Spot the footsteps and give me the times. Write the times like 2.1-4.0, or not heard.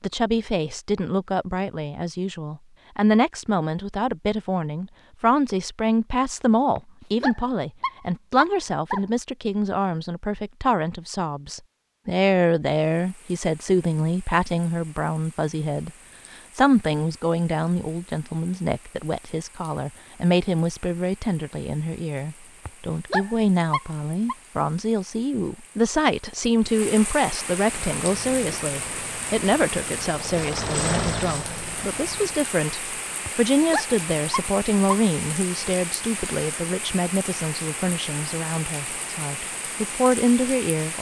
not heard.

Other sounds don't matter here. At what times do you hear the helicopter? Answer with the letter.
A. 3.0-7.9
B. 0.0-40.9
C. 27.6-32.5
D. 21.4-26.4
C.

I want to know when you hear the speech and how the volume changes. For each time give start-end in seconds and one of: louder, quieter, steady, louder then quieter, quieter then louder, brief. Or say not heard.
0.0-40.9 steady.